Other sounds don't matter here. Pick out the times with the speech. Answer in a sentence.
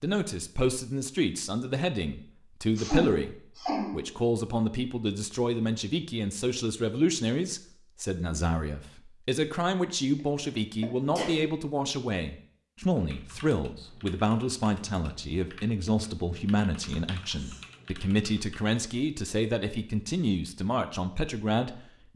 You can hear the speech from 0.0 to 22.1 s.